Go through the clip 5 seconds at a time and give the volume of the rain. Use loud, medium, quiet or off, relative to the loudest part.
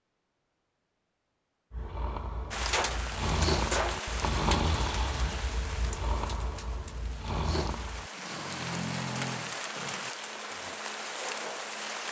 loud, medium, loud.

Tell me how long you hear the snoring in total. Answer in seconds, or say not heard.
9 s.